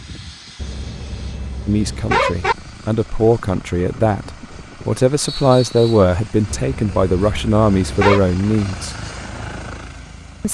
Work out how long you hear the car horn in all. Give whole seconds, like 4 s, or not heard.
4 s.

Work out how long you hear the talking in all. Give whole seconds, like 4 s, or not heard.
7 s.